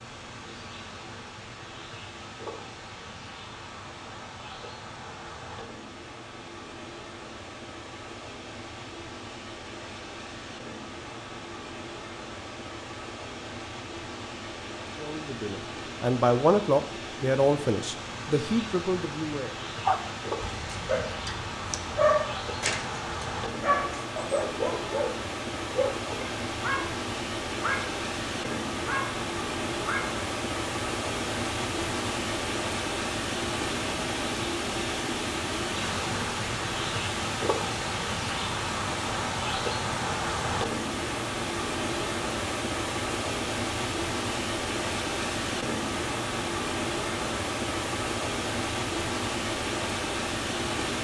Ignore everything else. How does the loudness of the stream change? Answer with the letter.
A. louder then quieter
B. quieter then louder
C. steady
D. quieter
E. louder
E.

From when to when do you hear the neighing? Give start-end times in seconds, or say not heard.
not heard.